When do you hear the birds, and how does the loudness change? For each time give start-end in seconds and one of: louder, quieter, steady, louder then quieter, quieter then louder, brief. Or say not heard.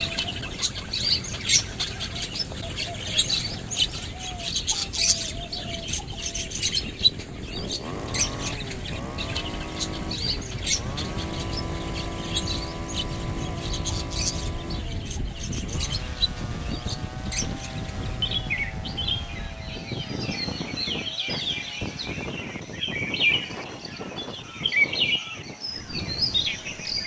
0.0-27.0 quieter then louder.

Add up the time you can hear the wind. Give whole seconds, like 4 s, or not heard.
27 s.